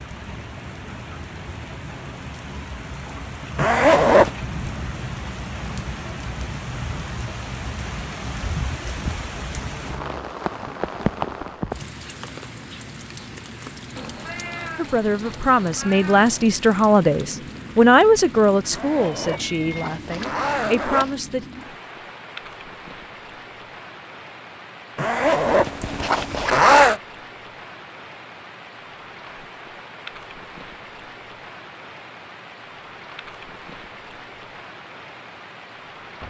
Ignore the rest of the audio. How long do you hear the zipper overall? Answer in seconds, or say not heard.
5 s.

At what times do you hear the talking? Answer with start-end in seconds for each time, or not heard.
14.8-21.4.